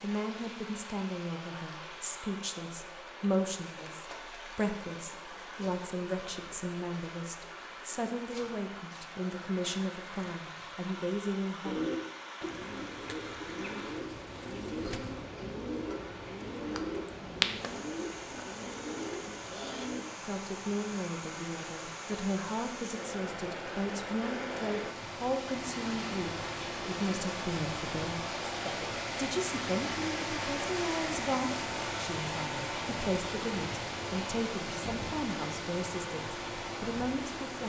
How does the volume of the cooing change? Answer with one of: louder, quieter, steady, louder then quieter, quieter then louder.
louder then quieter.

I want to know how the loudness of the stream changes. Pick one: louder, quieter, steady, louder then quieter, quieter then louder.
louder.